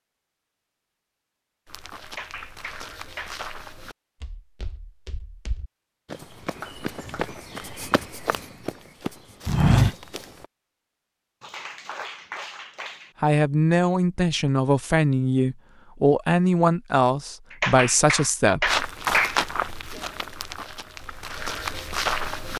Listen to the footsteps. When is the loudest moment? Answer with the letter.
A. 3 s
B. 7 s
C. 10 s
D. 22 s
C.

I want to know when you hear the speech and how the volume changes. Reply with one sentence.
You can hear the speech from 13.2 to 18.7 s, at a steady volume.